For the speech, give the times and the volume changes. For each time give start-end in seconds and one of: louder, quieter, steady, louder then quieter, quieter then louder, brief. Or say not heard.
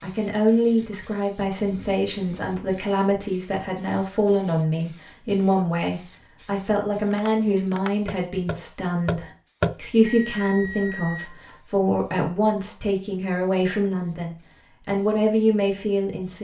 0.0-16.3 steady.